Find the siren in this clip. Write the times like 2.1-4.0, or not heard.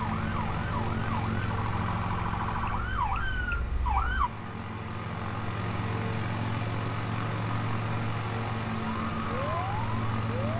0.0-4.3, 8.8-10.5.